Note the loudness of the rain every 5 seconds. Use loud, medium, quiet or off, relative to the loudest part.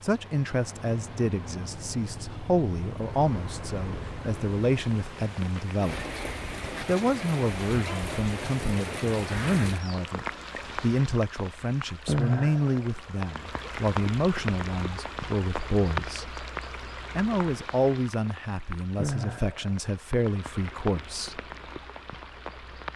medium, loud, loud, loud, medium.